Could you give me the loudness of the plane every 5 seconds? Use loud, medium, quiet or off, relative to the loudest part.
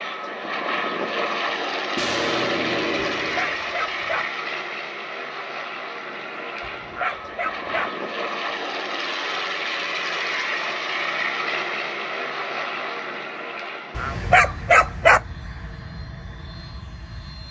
loud, loud, loud, quiet.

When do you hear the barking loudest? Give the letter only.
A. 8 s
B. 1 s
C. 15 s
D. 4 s
C.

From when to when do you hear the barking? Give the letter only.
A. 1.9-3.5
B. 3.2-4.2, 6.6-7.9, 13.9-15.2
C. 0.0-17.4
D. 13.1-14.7
B.